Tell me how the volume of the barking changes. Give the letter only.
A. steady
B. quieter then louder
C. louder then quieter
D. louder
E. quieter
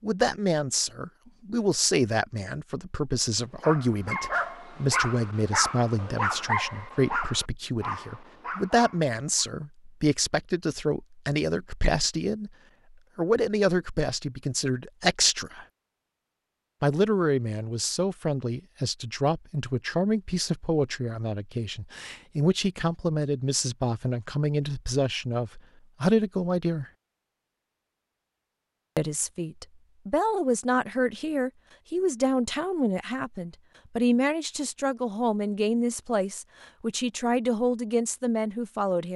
E.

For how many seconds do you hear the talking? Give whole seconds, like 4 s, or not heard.
35 s.